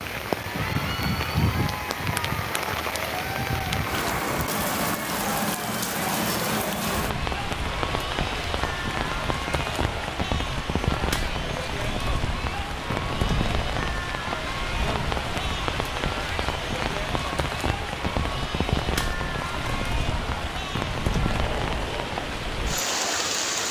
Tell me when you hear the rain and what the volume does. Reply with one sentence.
You can hear the rain from 0.0 to 23.6 s, at a steady volume.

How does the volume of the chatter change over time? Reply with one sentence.
The loudness of the chatter stays about the same.